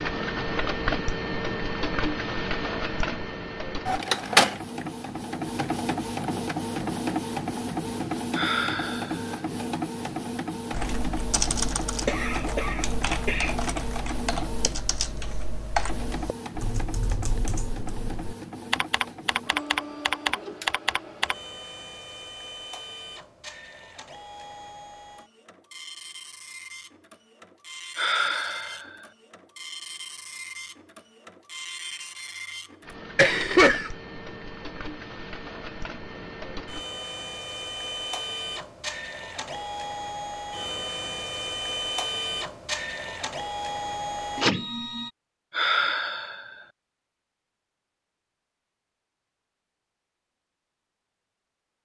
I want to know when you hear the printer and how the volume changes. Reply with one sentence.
You can hear the printer from 0.0 to 45.1 s, getting quieter then louder.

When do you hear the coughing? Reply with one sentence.
You can hear the coughing from 12.1 to 13.6 s and from 33.1 to 33.9 s.